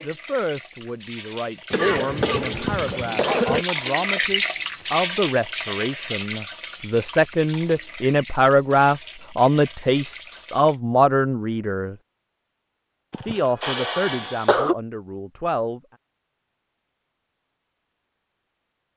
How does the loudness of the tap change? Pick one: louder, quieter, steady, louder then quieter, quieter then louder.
louder then quieter.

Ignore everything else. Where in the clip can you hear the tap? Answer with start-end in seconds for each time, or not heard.
0.0-10.8.